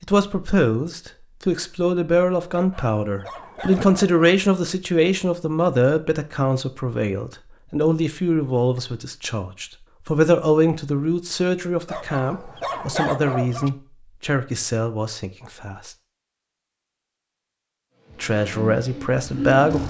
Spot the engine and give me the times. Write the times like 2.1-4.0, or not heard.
18.0-19.8.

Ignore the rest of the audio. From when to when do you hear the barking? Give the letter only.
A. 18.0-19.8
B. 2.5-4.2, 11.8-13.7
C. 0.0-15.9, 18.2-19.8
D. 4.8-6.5
B.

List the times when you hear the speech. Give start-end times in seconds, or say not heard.
0.0-15.9, 18.2-19.8.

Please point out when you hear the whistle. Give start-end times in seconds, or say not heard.
not heard.